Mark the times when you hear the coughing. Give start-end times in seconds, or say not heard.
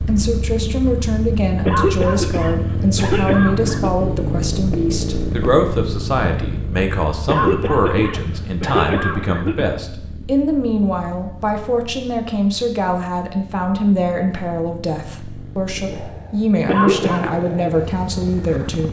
1.6-3.9, 7.2-9.7, 16.6-17.3.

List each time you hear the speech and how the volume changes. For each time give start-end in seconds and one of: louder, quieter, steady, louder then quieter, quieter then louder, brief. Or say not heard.
0.1-18.8 steady.